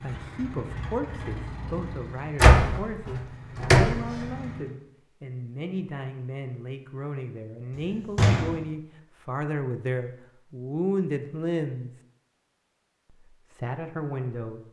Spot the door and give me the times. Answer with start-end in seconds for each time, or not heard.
2.4-3.9, 7.8-8.6.